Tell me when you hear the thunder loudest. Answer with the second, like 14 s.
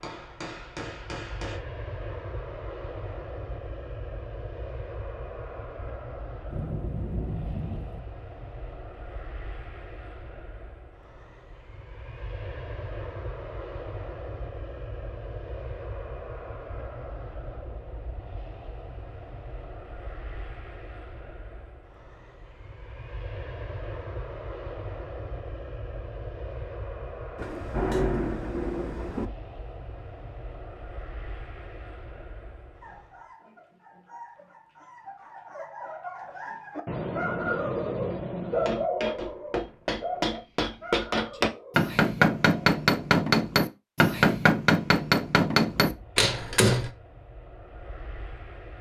28 s.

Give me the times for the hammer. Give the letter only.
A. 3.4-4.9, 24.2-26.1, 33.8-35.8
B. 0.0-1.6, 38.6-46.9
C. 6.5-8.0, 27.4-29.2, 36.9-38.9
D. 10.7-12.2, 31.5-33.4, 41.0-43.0
B.